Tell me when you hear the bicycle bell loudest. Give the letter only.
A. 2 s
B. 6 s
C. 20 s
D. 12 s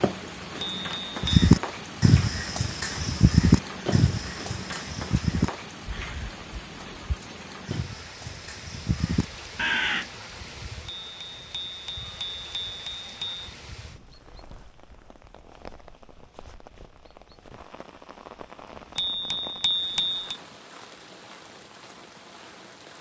C.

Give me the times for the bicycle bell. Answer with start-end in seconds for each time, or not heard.
0.6-1.5, 10.8-13.4, 18.9-20.4.